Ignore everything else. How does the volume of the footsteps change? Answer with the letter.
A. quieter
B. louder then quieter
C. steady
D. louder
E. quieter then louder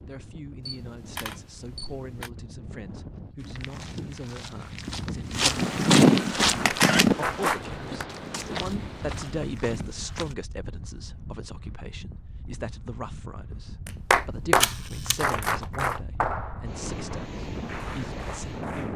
B.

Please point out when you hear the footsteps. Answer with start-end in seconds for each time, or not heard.
3.4-10.3.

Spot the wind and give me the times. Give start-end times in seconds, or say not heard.
0.0-18.9.